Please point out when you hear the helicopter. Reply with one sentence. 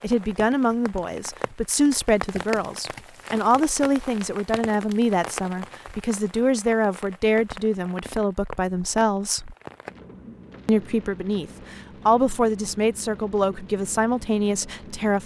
The helicopter can't be heard in this clip.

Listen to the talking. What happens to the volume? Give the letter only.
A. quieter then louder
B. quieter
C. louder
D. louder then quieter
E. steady
E.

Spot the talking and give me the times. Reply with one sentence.
The talking can be heard from 0.0 to 9.6 s and from 10.7 to 15.2 s.